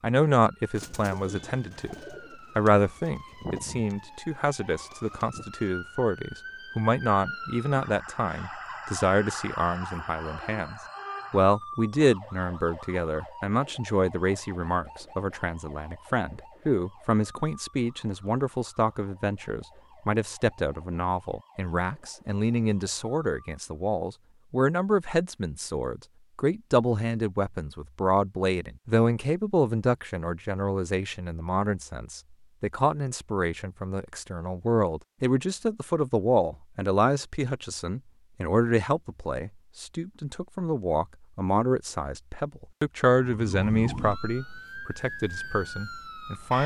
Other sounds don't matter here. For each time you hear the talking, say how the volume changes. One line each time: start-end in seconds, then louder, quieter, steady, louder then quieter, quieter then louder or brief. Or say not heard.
0.0-1.9 brief
2.5-46.6 steady.